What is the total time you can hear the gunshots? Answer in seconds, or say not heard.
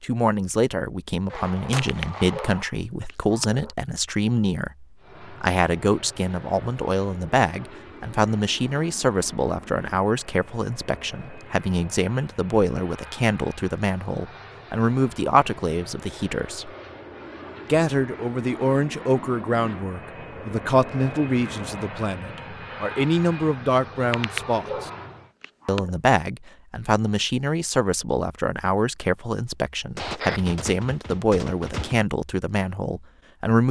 3 s.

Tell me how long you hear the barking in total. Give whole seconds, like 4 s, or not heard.
4 s.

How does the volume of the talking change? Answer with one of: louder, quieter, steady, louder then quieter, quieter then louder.
steady.